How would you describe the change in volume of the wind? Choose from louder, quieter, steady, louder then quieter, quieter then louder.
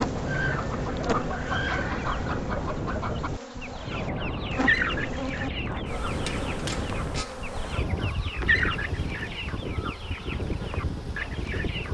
steady.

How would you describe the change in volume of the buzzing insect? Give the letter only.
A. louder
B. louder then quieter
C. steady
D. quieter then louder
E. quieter
E.